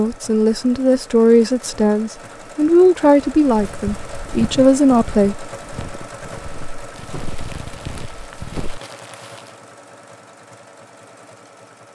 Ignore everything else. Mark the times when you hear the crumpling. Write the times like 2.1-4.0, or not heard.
6.9-9.6.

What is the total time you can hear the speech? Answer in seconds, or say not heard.
5 s.